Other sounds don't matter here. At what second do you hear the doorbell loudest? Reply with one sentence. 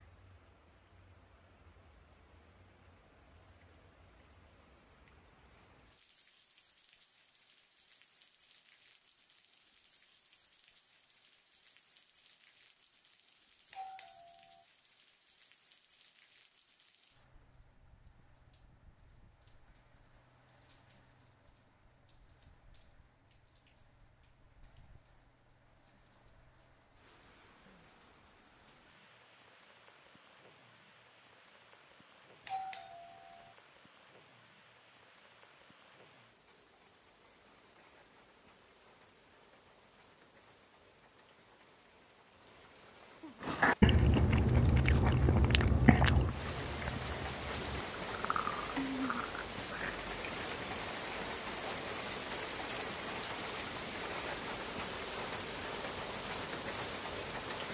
The loudest moment of the doorbell is at 33 seconds.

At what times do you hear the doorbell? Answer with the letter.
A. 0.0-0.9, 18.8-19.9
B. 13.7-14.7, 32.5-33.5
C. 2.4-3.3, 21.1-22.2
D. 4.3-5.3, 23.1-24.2
B.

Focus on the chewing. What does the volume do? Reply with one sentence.
The loudness of the chewing goes down.